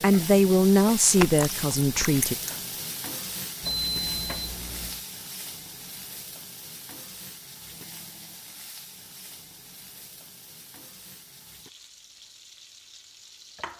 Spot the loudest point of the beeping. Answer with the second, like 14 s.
4 s.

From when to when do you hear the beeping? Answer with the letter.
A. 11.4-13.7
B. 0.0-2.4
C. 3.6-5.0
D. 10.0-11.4
C.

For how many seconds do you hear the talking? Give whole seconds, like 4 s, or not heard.
2 s.